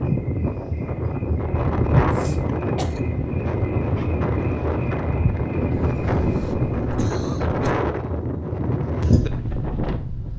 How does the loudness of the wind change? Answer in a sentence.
The volume of the wind stays about the same.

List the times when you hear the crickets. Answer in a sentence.
You can hear the crickets from 0.0 to 6.8 s.